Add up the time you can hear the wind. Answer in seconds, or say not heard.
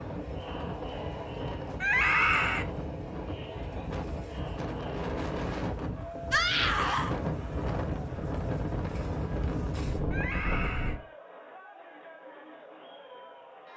11 s.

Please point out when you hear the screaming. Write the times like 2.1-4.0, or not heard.
1.8-2.6, 6.3-7.2, 10.1-10.9.